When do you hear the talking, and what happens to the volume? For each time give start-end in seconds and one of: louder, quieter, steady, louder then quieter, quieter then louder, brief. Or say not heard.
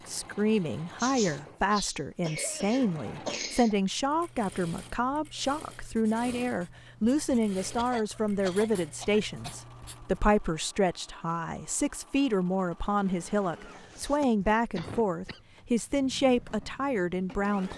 0.1-17.7 steady.